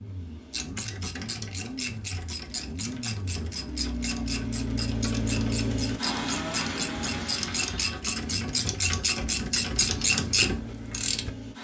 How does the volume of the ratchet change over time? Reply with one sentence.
The volume of the ratchet goes up.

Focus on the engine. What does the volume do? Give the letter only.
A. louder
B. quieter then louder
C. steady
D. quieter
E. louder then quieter
E.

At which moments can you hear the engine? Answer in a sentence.
The engine can be heard from 0.0 to 11.5 s.